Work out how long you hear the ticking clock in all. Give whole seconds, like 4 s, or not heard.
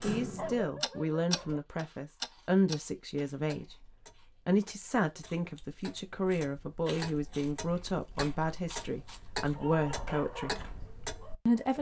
12 s.